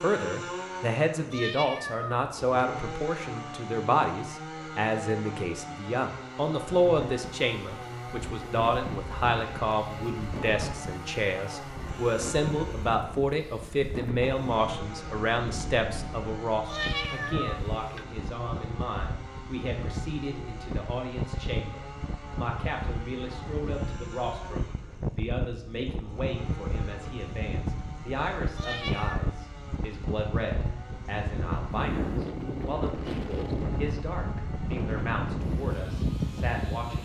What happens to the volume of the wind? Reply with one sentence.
The loudness of the wind goes up.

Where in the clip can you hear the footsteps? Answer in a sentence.
You can't hear the footsteps here.